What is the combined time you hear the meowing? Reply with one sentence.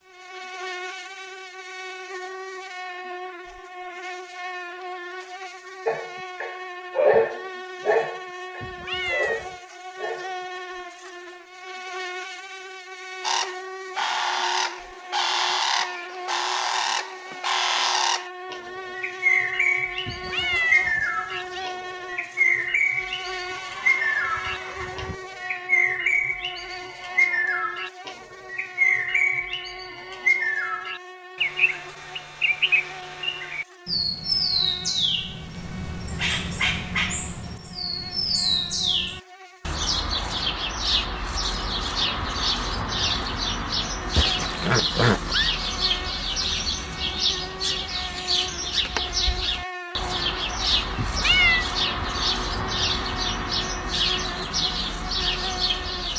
The meowing can be heard for 3 seconds in total.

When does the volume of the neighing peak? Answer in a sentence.
The volume of the neighing peaks at 45 seconds.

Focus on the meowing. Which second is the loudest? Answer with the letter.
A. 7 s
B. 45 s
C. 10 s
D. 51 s
D.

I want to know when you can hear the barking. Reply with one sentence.
You can hear the barking from 5.8 to 10.3 s.